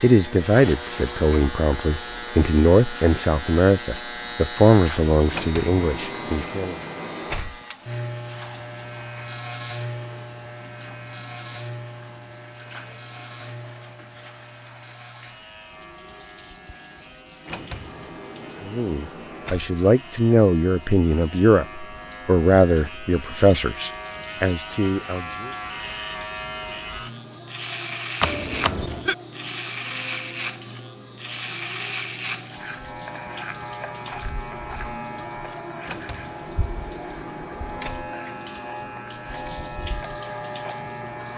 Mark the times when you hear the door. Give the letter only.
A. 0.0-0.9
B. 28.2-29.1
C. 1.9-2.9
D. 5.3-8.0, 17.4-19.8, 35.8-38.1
D.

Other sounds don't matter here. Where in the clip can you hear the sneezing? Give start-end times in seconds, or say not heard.
28.2-29.1.